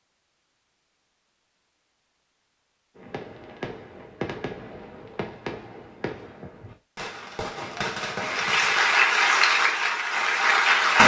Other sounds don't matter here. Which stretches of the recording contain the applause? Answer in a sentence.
You can hear the applause from 8.2 to 11.0 s.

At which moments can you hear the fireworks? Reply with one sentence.
You can hear the fireworks from 3.0 to 8.9 s.